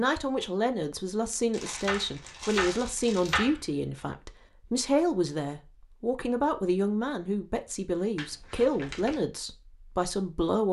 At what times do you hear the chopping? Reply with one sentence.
The chopping can be heard from 1.8 to 3.6 s.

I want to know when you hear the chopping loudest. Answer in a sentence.
The loudest moment of the chopping is at 3 seconds.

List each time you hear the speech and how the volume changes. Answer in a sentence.
You can hear the speech from 0.0 to 10.6 s, at a steady volume.